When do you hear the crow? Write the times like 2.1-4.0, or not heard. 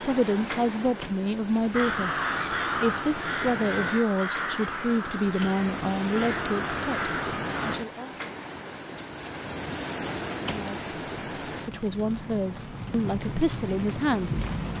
1.7-7.8.